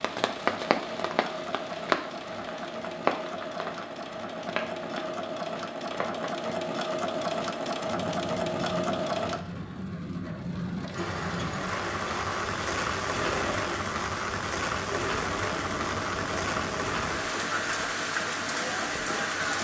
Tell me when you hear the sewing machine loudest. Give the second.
9 s.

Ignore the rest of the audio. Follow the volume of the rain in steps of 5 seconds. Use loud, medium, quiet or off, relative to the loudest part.
loud, medium, loud, loud.